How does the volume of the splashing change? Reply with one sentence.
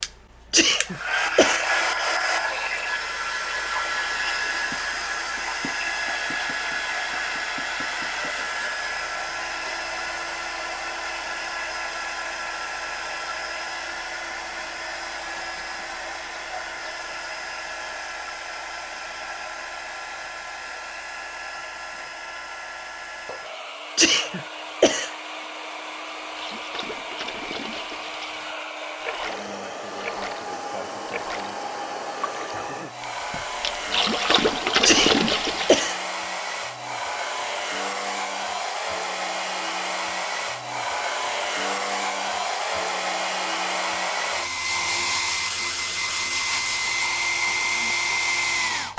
The volume of the splashing goes up.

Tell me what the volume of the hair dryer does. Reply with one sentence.
The loudness of the hair dryer goes down, then up.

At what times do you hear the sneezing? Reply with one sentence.
You can hear the sneezing from 0.5 to 1.7 s, from 23.9 to 25.1 s and from 34.8 to 36.0 s.